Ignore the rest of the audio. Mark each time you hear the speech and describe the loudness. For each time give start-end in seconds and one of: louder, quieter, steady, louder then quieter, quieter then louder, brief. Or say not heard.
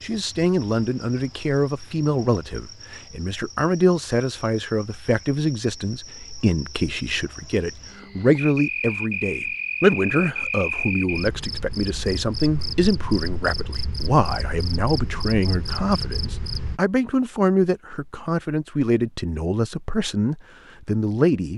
0.0-21.5 steady.